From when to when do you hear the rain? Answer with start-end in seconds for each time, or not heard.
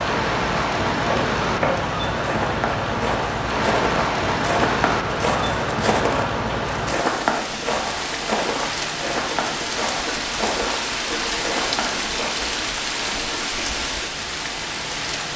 0.0-15.3.